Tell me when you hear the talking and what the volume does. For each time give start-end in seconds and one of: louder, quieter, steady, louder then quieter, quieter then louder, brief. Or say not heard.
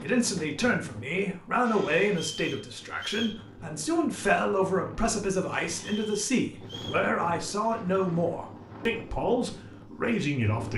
0.0-10.7 steady.